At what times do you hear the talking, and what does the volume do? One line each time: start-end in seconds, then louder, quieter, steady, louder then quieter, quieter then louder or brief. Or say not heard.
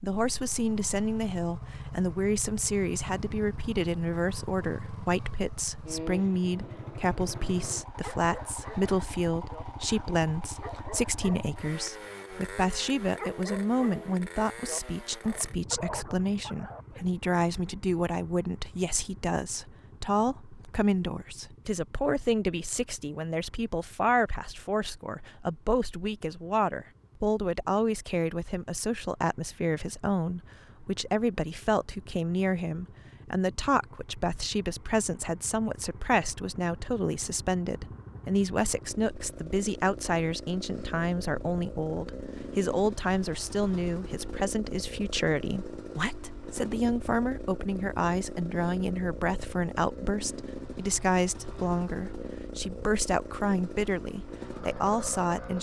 0.0-55.5 steady.